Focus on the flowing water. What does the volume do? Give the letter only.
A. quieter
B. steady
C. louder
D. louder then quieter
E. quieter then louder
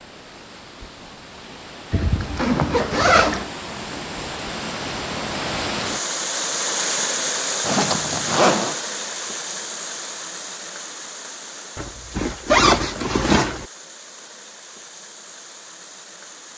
D.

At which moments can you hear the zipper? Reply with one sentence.
The zipper can be heard from 1.9 to 3.5 s, from 7.7 to 8.8 s and from 11.8 to 13.7 s.